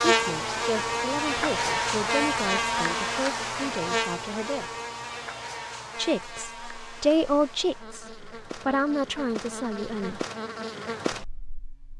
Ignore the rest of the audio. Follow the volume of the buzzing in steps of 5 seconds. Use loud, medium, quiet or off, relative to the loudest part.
loud, quiet, medium.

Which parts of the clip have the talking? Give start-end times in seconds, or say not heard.
0.1-4.8, 6.0-10.2.